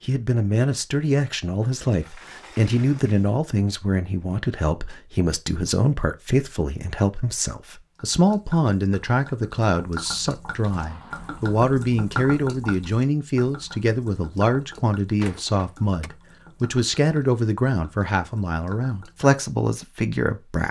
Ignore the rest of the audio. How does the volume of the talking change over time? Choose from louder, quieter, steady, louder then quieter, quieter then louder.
steady.